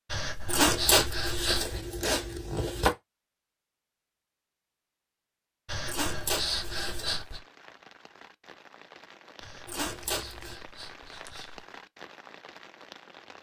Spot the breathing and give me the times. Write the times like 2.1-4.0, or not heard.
0.1-1.8, 5.7-7.4, 9.4-11.7.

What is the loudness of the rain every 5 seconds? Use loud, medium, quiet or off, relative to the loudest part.
off, loud, loud.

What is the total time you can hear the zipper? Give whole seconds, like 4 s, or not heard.
5 s.